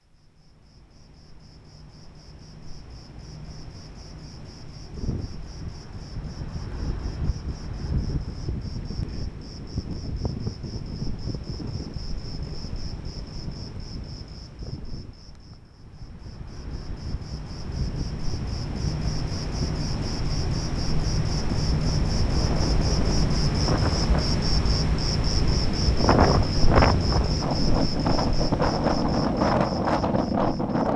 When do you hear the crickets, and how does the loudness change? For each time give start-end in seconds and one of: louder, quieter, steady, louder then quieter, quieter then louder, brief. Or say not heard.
0.1-30.9 louder.